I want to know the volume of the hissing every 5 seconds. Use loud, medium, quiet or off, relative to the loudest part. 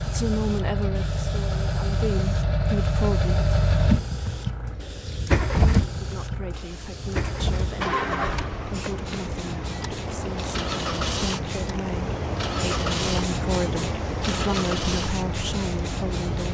medium, medium, loud, loud.